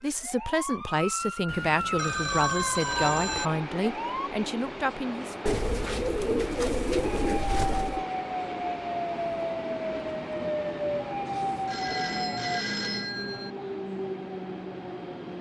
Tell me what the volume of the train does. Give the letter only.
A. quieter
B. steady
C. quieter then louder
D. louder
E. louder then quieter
B.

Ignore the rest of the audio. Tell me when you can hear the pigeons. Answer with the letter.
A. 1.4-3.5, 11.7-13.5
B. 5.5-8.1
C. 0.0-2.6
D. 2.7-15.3
B.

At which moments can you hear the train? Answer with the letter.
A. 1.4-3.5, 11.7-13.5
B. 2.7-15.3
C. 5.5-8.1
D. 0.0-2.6
B.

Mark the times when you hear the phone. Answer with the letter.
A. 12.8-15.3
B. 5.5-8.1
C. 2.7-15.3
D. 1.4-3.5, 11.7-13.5
D.